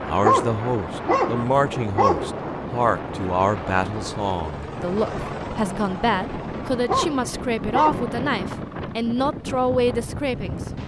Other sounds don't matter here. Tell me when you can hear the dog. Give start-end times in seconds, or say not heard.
0.2-2.4, 6.8-8.1.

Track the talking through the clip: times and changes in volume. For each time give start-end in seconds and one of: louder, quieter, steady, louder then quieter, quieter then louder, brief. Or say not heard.
0.0-10.6 steady.